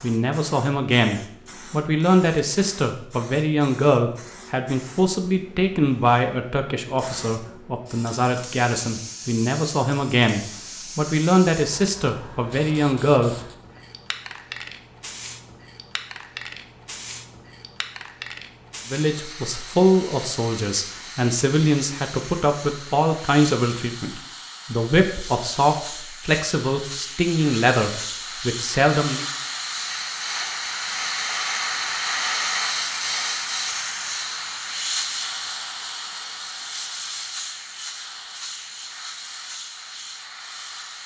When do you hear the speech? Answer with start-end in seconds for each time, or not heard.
0.0-13.3, 18.9-29.2.